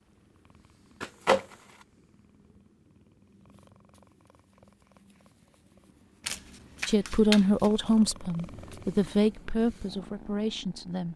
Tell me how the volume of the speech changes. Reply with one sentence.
The volume of the speech goes down.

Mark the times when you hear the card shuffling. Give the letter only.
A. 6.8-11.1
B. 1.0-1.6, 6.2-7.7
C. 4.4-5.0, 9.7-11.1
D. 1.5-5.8
B.